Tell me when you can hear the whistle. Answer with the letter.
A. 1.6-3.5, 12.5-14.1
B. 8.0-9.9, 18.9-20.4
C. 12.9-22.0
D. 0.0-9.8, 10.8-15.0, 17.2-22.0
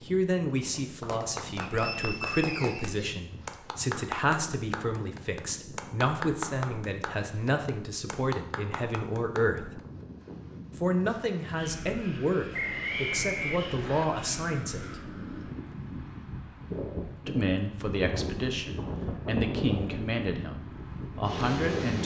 A.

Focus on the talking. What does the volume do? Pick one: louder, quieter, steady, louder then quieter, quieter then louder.
steady.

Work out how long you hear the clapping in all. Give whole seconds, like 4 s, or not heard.
9 s.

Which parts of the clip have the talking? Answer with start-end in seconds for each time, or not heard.
0.0-9.8, 10.8-15.0, 17.2-22.0.